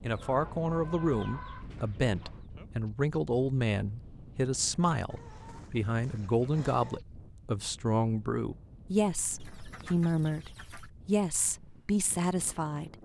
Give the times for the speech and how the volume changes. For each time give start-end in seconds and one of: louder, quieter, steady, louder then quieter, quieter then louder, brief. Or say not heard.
0.0-12.9 steady.